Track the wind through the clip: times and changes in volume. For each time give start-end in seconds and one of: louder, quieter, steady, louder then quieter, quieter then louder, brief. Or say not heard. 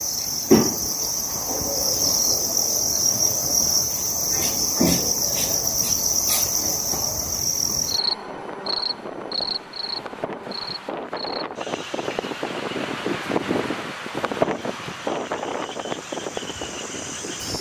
0.0-17.5 louder.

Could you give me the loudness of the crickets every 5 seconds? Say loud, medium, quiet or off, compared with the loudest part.
loud, loud, quiet, quiet.